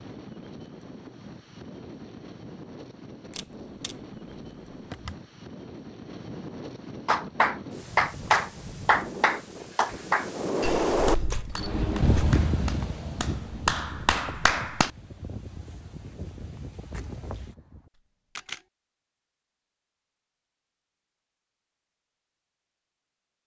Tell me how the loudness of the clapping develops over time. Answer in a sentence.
The loudness of the clapping goes down, then up.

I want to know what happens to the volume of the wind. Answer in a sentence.
The loudness of the wind goes up, then down.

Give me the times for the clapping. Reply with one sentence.
You can hear the clapping from 7.0 to 14.9 s.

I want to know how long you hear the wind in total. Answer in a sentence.
You can hear the wind for 18 seconds altogether.